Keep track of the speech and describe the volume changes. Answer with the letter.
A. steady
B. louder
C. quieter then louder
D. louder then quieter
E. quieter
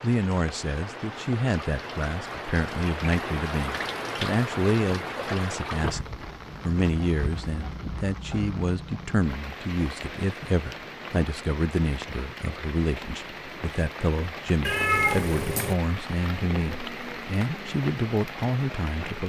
A.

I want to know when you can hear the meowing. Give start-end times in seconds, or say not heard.
14.6-15.8.